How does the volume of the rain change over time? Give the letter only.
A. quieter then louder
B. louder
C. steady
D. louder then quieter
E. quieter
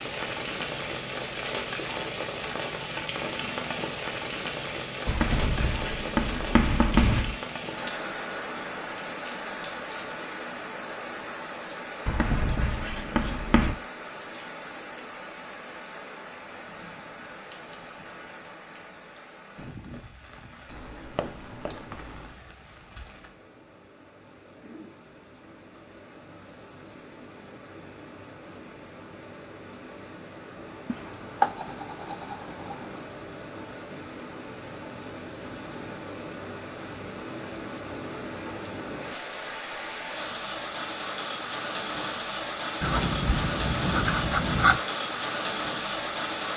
A.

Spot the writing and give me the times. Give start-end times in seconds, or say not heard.
5.0-7.3, 12.1-13.8, 20.6-22.4, 30.9-33.1, 42.8-44.8.